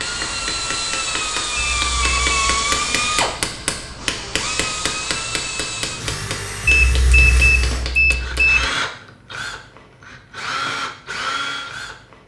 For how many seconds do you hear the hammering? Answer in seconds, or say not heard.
9 s.